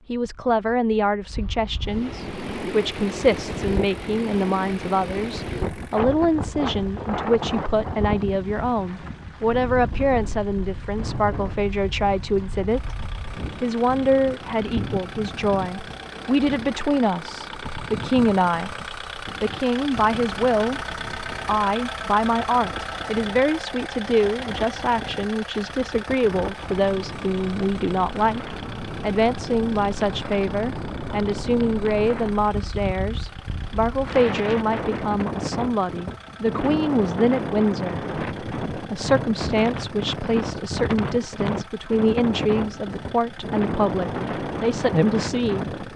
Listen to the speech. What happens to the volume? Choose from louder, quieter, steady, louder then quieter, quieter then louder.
steady.